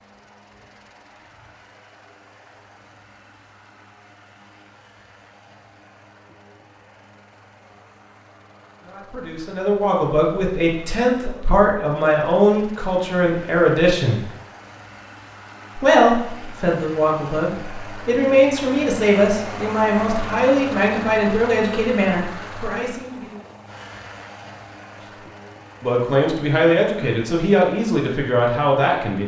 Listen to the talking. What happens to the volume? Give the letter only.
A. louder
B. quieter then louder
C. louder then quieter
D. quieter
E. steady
E.